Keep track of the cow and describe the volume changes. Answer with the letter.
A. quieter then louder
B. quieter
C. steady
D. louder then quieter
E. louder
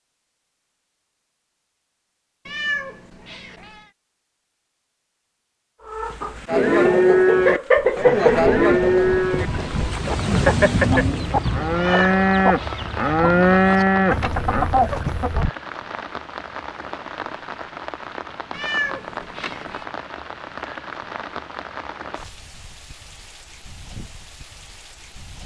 A.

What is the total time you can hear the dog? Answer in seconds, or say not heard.
not heard.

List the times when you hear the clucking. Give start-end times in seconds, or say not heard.
5.8-15.5.